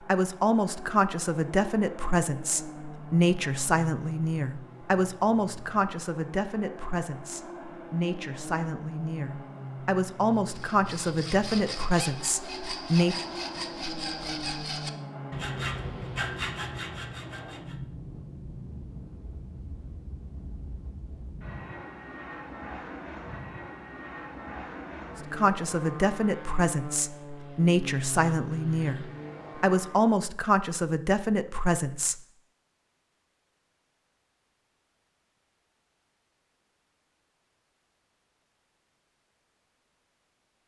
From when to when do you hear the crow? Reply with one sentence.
The crow can't be heard in this clip.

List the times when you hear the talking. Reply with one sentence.
You can hear the talking from 0.1 to 13.2 s and from 25.3 to 32.2 s.